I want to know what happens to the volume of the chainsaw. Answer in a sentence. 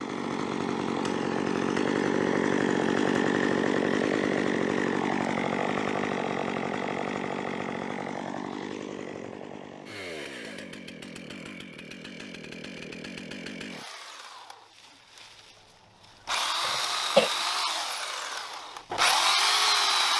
The loudness of the chainsaw goes down, then up.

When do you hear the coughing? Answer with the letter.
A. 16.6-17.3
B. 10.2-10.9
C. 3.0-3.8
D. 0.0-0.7
A.